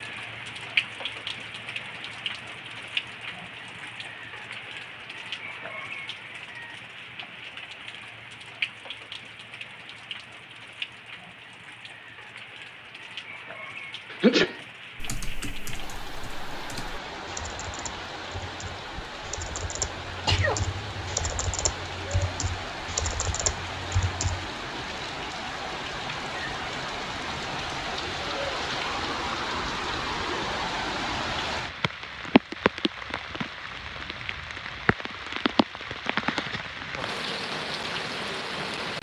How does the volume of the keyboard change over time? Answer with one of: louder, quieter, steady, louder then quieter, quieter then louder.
louder.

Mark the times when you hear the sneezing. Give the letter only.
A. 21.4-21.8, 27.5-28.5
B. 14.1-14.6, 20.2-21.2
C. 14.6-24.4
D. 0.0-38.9
B.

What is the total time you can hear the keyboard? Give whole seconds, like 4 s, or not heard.
10 s.